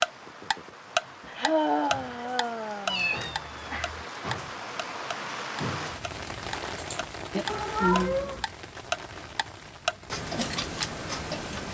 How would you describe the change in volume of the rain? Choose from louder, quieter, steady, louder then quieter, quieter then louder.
louder then quieter.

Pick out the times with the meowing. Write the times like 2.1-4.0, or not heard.
2.9-4.0, 7.5-8.4.